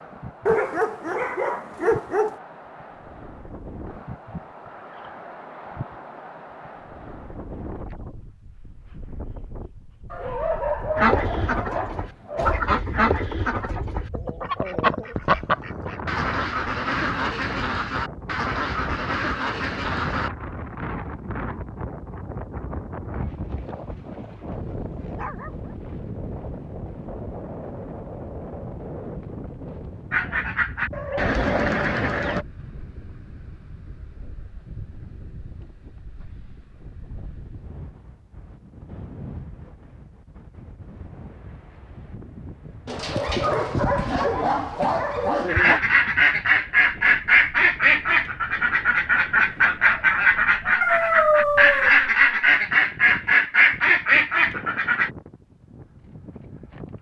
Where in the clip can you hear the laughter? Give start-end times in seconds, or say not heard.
not heard.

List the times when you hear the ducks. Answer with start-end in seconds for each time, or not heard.
10.9-20.3, 30.1-32.5, 45.5-55.1.